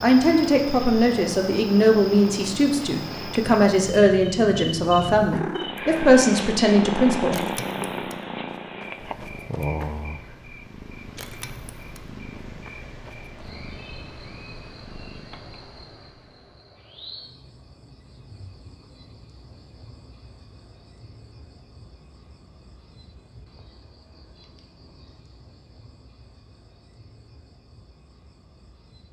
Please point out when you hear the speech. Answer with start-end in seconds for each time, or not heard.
0.0-7.4.